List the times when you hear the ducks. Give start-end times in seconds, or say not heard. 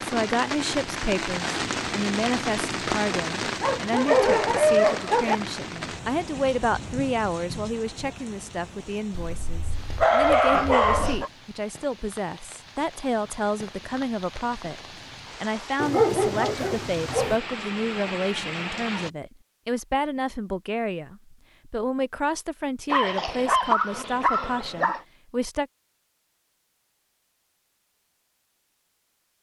not heard.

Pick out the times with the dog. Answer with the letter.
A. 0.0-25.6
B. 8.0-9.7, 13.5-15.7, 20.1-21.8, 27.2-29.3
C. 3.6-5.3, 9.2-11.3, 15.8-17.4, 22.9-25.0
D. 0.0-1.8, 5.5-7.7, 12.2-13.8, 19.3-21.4
C.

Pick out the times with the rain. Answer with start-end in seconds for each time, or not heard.
0.0-19.1.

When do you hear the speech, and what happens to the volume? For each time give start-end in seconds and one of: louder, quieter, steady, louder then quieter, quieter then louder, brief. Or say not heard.
0.0-25.6 steady.